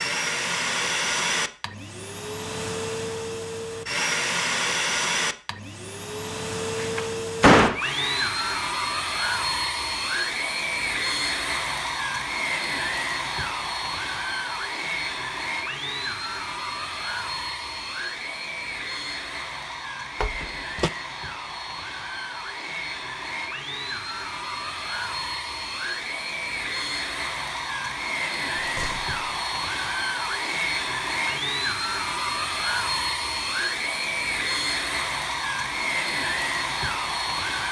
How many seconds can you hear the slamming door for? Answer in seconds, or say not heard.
2 s.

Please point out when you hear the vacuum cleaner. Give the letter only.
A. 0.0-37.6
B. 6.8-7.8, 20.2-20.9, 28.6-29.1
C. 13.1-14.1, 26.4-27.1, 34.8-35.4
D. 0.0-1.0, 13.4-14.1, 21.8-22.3
A.